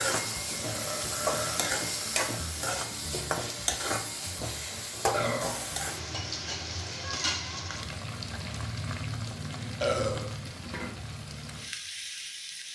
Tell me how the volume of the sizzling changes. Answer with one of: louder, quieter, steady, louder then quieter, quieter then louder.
quieter.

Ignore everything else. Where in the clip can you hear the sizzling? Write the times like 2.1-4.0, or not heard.
0.0-12.7.